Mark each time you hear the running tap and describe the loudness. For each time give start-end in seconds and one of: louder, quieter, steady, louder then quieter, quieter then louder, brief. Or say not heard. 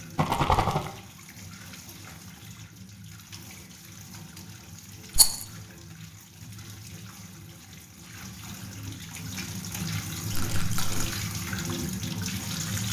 0.0-12.8 louder.